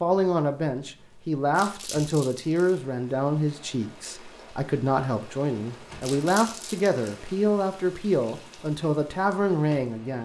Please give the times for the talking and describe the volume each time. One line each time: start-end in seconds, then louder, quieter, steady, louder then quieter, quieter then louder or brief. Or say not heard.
0.0-10.2 steady.